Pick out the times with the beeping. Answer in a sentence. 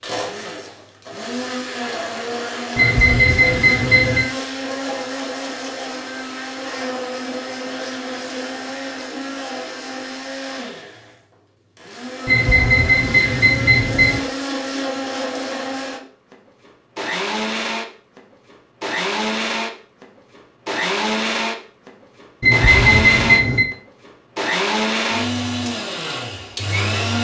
You can hear the beeping from 2.8 to 4.2 s, from 12.2 to 14.2 s and from 22.4 to 23.6 s.